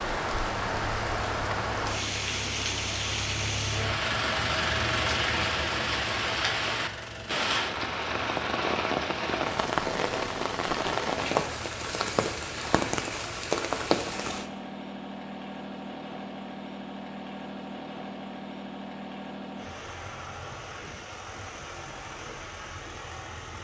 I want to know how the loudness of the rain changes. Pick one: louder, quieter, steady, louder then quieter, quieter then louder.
steady.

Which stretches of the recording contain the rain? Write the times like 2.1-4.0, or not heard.
0.0-14.5.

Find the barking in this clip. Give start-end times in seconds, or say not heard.
not heard.